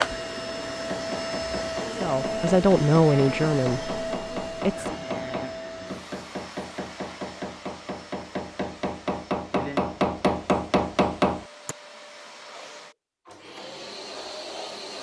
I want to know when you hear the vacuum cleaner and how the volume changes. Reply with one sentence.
You can hear the vacuum cleaner from 0.0 to 14.9 s, getting quieter then louder.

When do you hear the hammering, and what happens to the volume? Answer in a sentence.
The hammering can be heard from 0.8 to 11.8 s, getting louder.